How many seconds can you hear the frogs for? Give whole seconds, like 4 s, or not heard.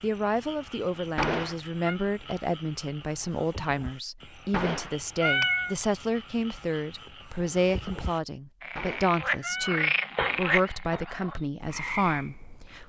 13 s.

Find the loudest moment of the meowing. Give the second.
5 s.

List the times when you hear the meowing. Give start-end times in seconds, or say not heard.
1.1-1.9, 4.5-5.8, 8.8-11.1.